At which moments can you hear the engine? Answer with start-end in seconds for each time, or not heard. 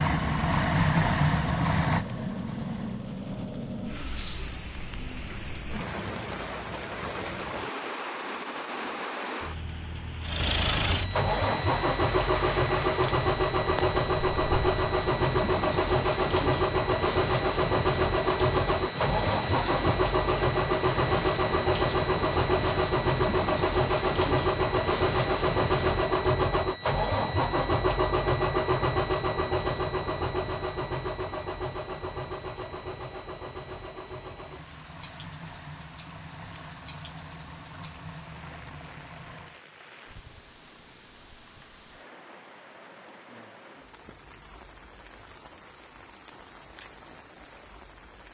0.0-3.1, 10.2-39.6.